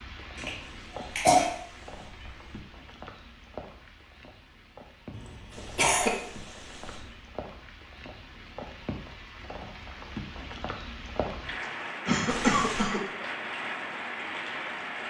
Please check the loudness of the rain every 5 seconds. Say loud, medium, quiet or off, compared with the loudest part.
medium, medium, loud.